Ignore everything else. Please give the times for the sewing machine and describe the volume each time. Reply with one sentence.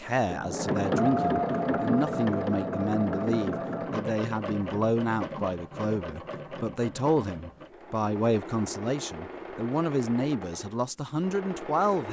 You can hear the sewing machine from 0.0 to 12.0 s, getting quieter.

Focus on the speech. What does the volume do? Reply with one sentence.
The loudness of the speech stays about the same.